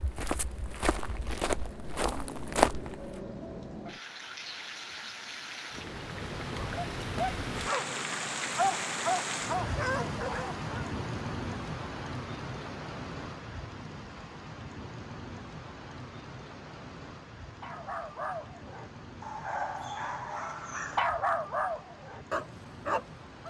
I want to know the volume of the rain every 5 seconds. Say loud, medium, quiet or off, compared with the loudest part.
medium, loud, loud, medium, quiet.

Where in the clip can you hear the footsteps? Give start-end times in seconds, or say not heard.
0.0-3.2.